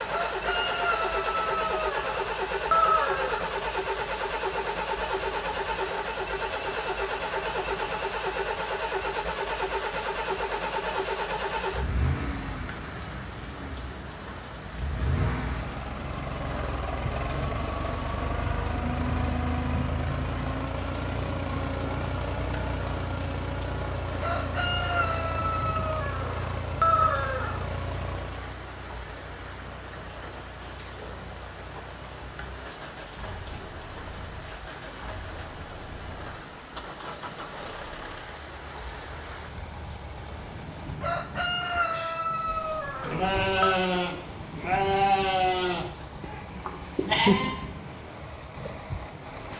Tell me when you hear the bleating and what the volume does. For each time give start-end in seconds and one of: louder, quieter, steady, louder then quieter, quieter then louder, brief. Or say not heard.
42.0-47.5 louder then quieter.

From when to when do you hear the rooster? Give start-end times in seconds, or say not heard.
0.1-3.5, 24.2-27.6, 41.0-43.8.